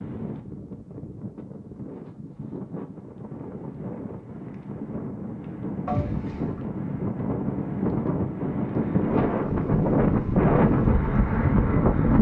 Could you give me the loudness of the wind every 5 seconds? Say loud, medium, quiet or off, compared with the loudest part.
quiet, medium, loud.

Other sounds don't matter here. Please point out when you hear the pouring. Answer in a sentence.
You can hear the pouring from 5.8 to 6.7 s.